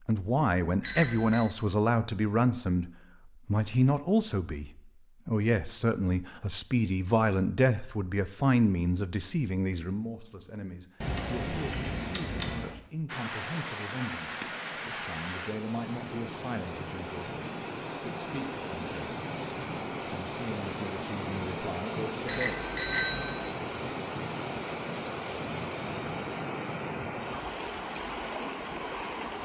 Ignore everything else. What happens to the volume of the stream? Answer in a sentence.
The volume of the stream stays about the same.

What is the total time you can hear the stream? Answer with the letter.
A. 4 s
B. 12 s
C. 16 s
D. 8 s
C.